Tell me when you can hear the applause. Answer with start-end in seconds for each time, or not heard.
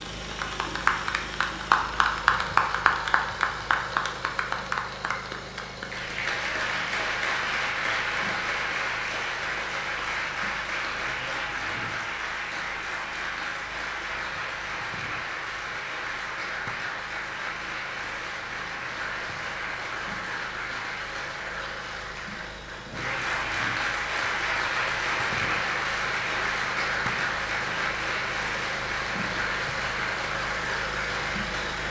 0.0-31.8.